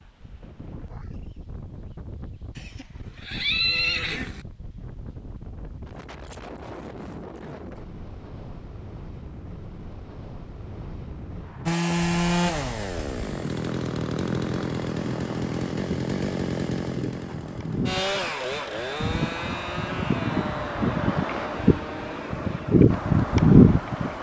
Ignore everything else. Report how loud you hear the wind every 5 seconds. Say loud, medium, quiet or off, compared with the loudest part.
quiet, quiet, quiet, quiet, loud.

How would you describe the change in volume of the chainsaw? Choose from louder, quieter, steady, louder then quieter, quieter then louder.
quieter.